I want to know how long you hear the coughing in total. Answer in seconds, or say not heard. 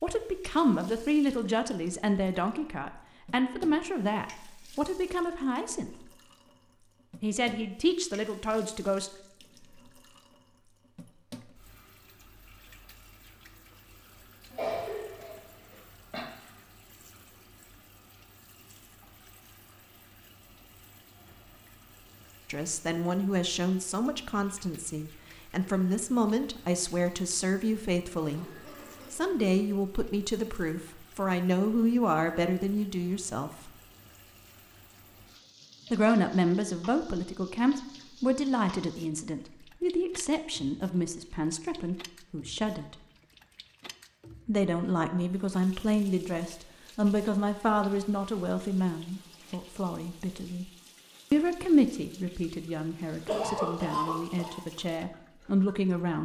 4 s.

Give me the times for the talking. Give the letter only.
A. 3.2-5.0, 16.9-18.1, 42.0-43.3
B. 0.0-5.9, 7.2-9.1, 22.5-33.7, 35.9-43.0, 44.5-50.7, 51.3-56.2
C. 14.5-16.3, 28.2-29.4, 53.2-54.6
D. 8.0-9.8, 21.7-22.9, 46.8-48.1
B.